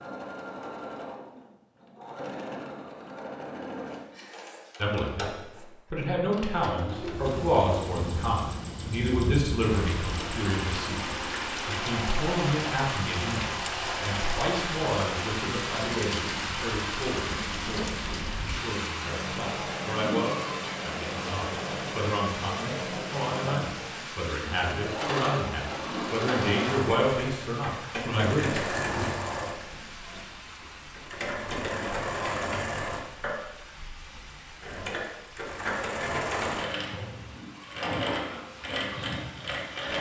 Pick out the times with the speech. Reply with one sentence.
The speech can be heard from 4.8 to 29.1 s.